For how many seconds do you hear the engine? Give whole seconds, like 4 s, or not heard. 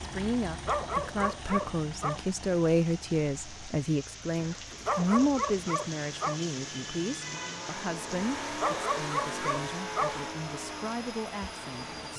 12 s.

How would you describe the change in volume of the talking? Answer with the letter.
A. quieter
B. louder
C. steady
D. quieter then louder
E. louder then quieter
A.